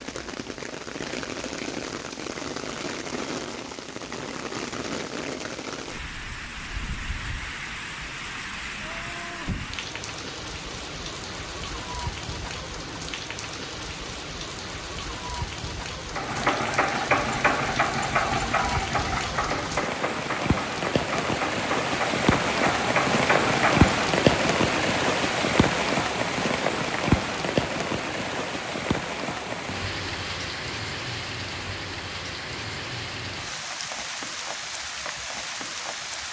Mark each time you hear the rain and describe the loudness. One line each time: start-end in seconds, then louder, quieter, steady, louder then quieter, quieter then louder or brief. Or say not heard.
0.0-36.2 louder then quieter.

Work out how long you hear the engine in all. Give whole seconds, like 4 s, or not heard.
8 s.